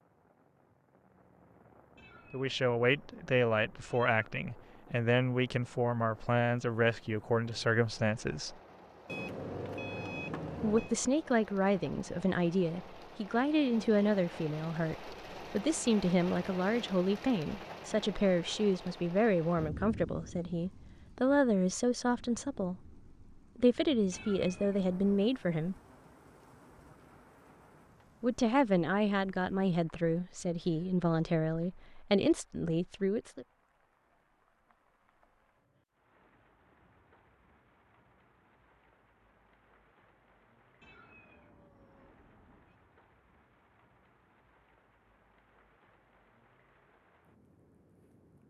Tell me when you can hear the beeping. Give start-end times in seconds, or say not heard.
9.1-10.9.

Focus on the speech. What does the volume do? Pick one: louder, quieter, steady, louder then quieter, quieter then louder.
steady.